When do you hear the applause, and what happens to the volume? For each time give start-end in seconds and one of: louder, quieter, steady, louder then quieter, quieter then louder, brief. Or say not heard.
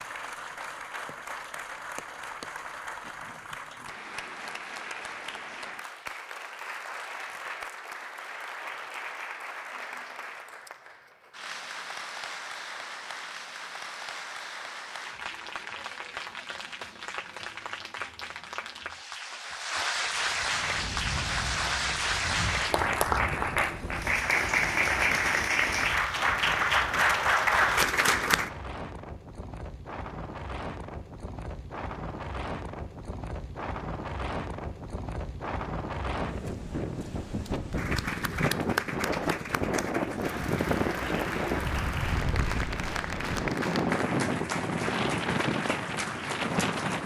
0.0-28.5 louder
37.7-47.0 steady.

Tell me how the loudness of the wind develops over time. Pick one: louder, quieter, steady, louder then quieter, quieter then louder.
louder.